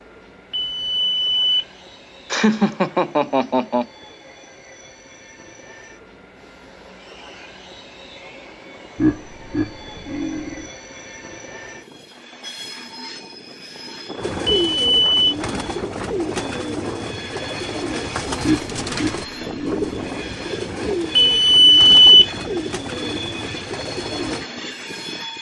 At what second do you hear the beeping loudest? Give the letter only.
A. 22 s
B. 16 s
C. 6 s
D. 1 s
A.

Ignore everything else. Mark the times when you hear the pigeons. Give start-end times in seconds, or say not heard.
14.2-24.4.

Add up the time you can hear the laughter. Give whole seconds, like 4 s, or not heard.
5 s.